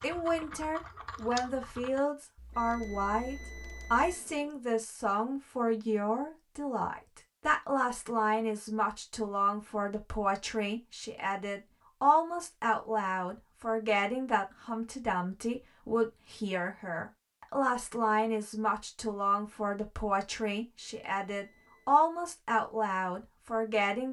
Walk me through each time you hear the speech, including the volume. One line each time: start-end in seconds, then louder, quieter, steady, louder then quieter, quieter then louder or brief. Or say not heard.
0.0-24.0 steady.